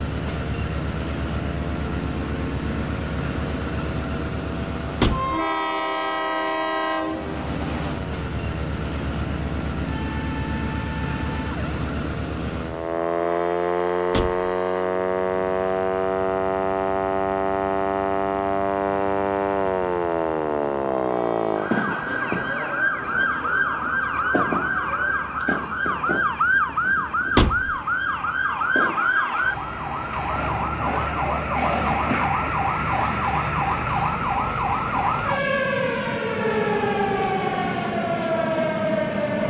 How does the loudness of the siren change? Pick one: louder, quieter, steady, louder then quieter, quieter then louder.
louder.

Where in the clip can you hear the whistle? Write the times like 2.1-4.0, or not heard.
not heard.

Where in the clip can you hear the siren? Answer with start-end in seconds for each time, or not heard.
0.0-39.4.